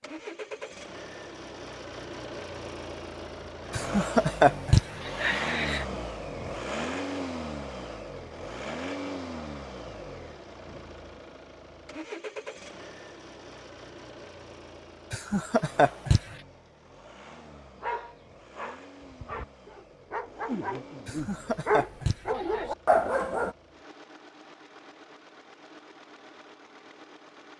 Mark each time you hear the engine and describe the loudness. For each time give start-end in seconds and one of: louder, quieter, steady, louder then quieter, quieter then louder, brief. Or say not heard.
0.0-27.5 quieter.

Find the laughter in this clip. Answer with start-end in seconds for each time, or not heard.
3.7-5.8, 15.1-16.4, 21.1-22.6.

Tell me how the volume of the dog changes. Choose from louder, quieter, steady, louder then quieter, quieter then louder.
louder.